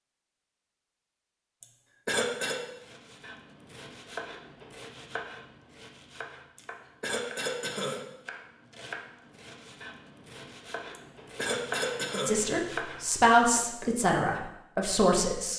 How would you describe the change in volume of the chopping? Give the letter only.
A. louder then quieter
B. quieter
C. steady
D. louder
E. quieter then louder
D.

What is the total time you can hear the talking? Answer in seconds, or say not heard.
3 s.